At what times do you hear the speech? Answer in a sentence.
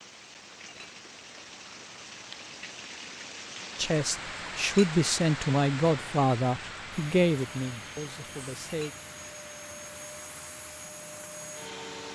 You can hear the speech from 3.8 to 8.9 s.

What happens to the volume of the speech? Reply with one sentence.
The volume of the speech goes down.